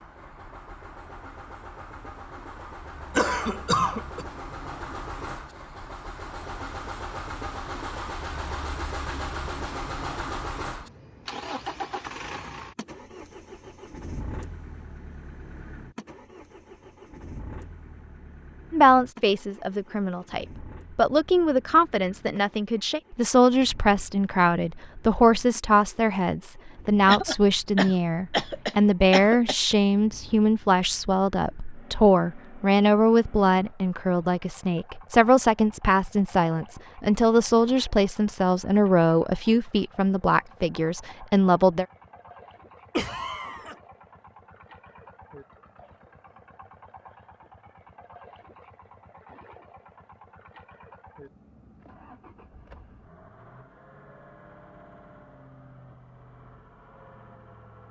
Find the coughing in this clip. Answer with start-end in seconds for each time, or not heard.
3.1-4.2, 27.1-29.6, 43.0-43.8.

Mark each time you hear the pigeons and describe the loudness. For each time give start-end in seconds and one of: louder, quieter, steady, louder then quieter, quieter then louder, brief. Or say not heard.
not heard.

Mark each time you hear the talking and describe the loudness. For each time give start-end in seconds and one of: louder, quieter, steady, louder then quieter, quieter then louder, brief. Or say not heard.
18.7-41.9 steady.